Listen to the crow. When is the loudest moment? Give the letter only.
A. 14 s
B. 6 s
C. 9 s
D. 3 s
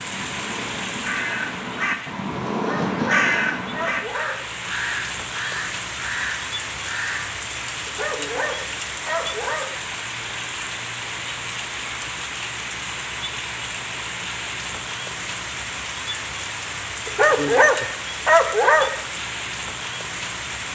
D.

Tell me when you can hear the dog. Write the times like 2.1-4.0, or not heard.
2.5-4.5, 7.8-9.8, 17.1-19.0.